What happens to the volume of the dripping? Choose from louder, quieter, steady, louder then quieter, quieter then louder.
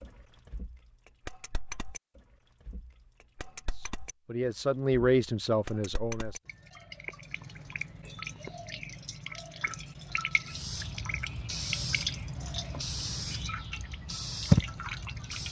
louder.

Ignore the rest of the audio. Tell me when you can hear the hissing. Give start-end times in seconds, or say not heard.
10.4-15.4.